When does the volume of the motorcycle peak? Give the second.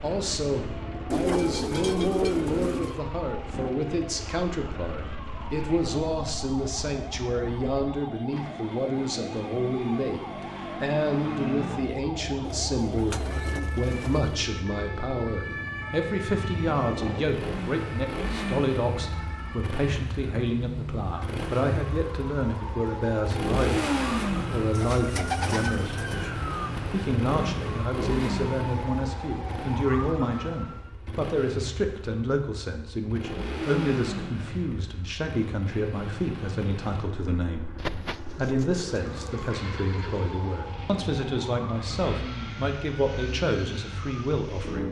24 s.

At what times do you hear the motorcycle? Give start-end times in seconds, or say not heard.
0.0-44.8.